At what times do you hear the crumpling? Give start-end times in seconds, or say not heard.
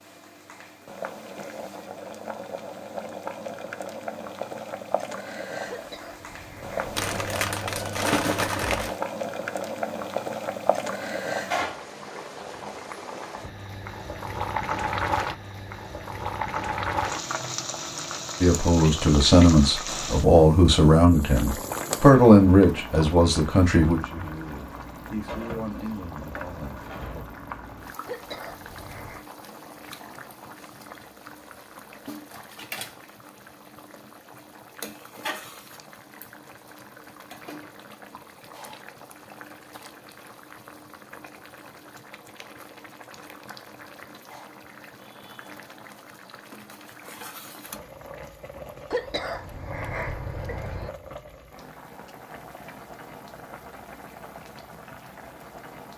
7.0-9.0.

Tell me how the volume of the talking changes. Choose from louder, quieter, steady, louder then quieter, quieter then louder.
quieter.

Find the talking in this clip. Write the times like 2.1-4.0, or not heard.
18.4-27.2.